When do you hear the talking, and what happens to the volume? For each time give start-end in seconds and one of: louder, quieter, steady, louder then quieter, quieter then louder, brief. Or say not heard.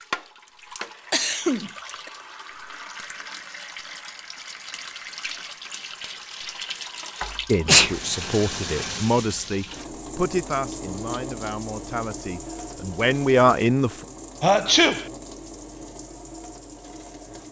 7.5-14.1 quieter then louder.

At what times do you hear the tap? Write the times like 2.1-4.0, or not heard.
0.0-17.4.